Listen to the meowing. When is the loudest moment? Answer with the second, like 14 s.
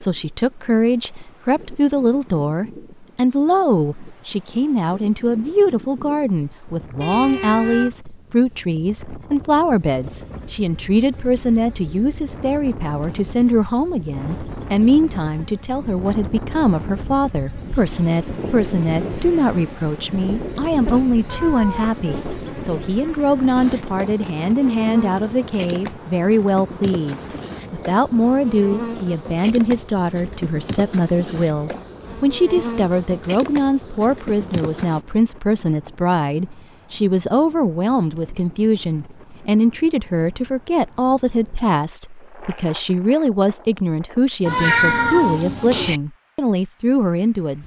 45 s.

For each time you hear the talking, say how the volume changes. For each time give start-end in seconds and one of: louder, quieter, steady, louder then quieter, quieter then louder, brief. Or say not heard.
0.0-47.6 steady.